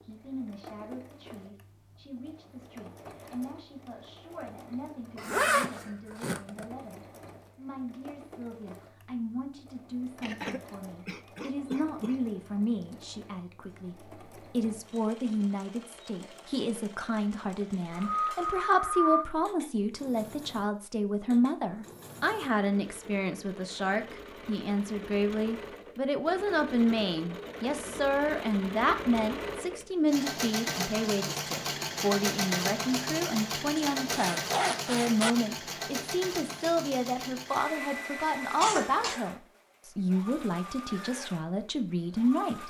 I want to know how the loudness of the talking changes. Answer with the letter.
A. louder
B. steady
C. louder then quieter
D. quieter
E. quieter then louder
A.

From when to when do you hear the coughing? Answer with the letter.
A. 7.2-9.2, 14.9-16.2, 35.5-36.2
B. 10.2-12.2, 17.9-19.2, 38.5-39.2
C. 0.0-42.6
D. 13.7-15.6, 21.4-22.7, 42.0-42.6
B.